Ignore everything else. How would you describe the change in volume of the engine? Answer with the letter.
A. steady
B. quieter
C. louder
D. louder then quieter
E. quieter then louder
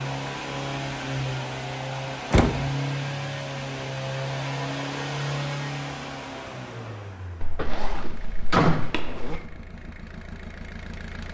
B.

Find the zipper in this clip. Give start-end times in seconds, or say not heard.
7.4-9.4.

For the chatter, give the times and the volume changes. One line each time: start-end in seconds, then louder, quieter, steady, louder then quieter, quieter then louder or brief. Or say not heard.
not heard.